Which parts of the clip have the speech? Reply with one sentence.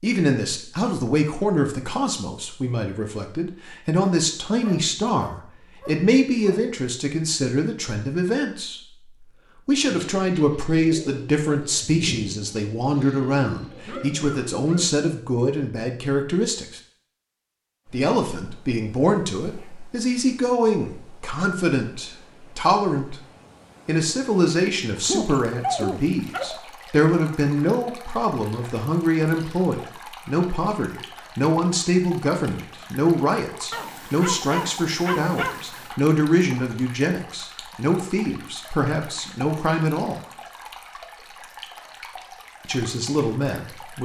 The speech can be heard from 0.0 to 8.8 s, from 9.7 to 16.8 s, from 17.9 to 23.2 s, from 23.9 to 40.2 s and from 42.6 to 44.0 s.